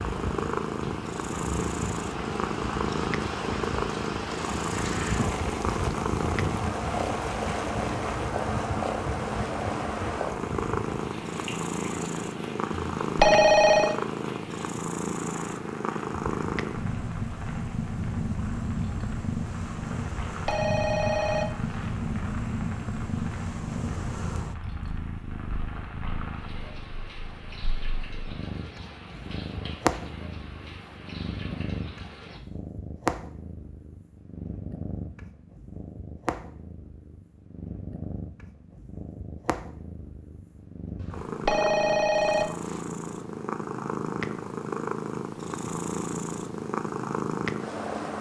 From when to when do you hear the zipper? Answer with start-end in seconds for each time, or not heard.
not heard.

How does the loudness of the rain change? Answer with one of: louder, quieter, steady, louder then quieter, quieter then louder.
quieter.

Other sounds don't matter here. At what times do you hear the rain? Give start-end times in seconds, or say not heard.
0.0-32.4.